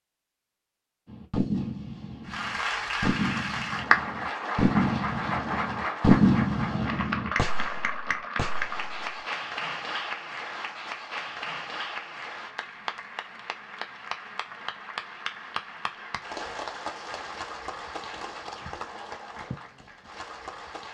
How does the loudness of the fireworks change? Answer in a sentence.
The loudness of the fireworks goes up, then down.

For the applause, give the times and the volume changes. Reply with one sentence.
The applause can be heard from 2.2 to 20.9 s, getting quieter.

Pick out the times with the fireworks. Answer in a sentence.
You can hear the fireworks from 1.1 to 9.2 s.